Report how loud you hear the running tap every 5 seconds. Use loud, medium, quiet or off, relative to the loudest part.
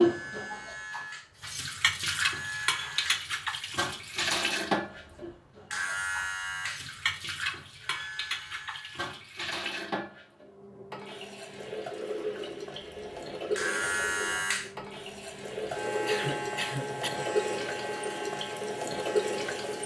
loud, medium, medium, loud.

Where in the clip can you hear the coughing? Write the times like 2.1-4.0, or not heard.
16.1-17.2.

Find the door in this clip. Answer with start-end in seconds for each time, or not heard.
not heard.